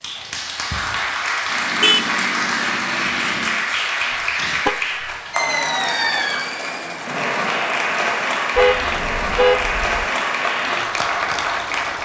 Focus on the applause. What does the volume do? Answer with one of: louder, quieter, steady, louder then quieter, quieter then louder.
steady.